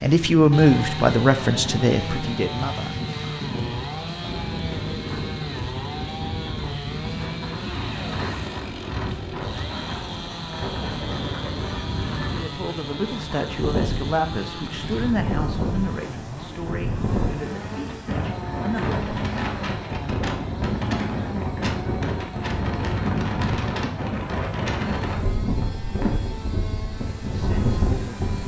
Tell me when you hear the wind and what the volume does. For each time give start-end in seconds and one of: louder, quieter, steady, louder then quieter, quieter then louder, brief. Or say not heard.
0.0-28.4 louder.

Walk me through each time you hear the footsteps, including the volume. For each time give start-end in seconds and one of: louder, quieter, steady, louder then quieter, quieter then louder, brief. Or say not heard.
not heard.